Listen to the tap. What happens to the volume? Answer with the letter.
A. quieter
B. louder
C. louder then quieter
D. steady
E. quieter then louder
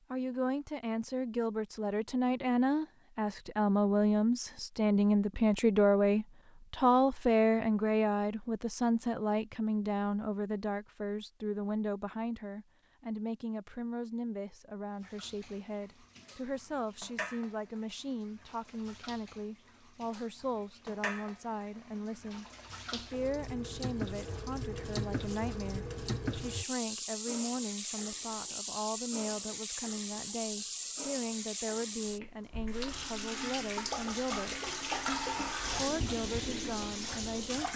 B.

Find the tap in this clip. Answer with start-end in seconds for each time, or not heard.
14.9-37.7.